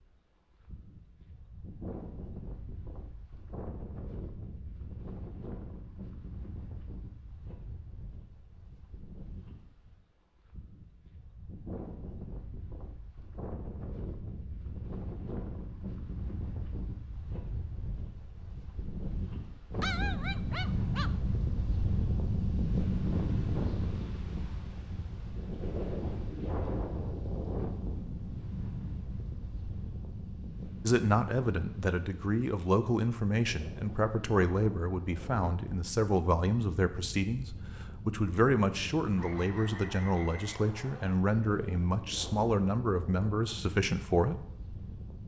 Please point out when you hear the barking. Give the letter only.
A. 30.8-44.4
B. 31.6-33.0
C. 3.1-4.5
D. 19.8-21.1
D.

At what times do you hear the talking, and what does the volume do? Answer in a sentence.
You can hear the talking from 30.8 to 44.4 s, at a steady volume.